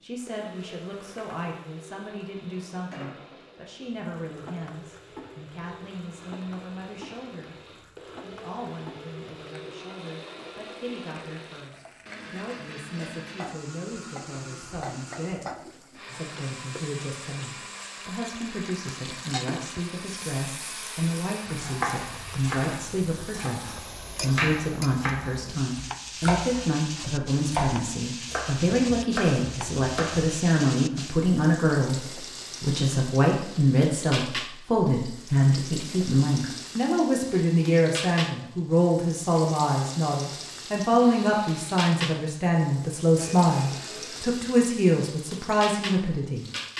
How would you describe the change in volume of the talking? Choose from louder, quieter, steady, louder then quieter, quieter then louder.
louder.